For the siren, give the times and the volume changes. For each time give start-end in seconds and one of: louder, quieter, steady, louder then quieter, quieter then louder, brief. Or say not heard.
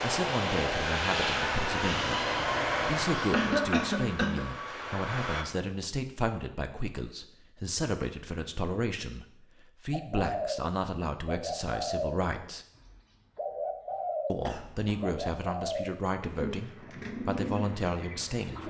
not heard.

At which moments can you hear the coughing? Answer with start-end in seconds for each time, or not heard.
3.3-4.5, 14.4-15.2.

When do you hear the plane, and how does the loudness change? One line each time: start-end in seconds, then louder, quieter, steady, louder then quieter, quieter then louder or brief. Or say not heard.
0.0-5.5 quieter.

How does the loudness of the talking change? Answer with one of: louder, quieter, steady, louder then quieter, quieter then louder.
steady.